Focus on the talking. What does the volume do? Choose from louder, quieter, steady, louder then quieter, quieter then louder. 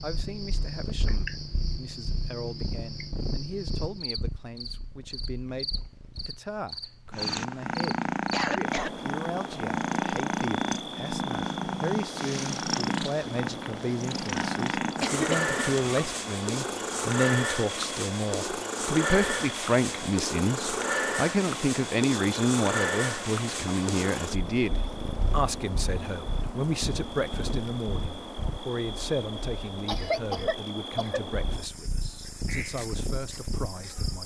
louder then quieter.